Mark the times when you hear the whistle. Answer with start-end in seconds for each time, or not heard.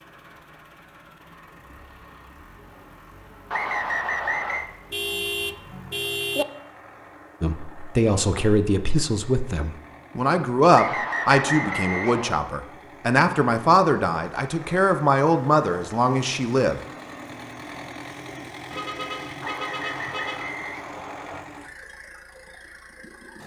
3.5-4.7, 10.7-12.4, 19.4-21.4.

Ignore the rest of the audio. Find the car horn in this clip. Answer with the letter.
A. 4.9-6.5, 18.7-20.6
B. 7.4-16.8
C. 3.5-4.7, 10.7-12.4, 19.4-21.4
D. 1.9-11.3
A.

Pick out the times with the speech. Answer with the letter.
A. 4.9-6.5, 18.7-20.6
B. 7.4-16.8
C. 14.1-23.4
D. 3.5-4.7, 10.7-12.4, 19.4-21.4
B.